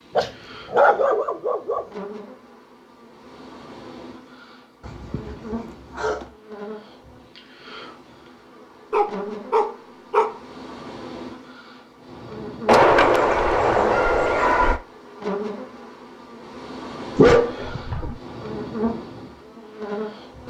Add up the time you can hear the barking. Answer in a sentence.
You can hear the barking for 8 seconds altogether.